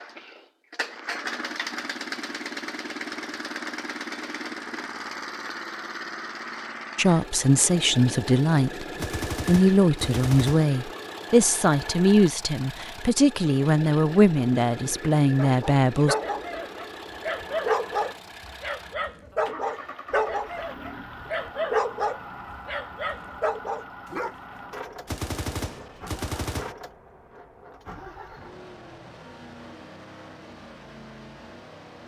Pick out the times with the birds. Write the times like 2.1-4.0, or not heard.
not heard.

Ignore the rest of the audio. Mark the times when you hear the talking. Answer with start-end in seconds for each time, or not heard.
7.0-8.8, 9.4-16.1.